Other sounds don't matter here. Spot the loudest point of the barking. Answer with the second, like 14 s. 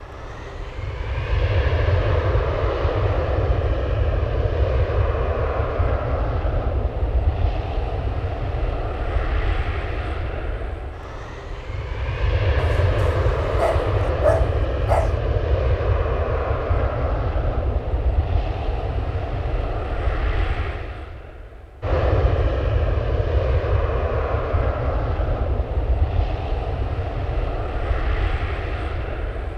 14 s.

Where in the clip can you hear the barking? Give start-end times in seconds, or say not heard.
12.6-15.1.